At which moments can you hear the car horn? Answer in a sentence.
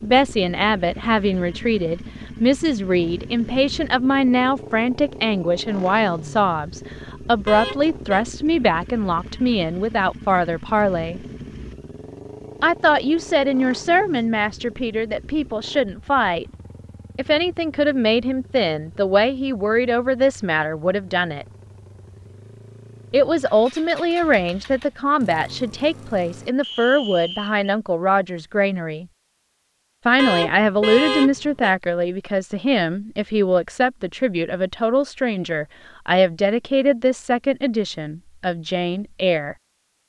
The car horn can be heard from 7.5 to 8.2 s and from 30.1 to 31.8 s.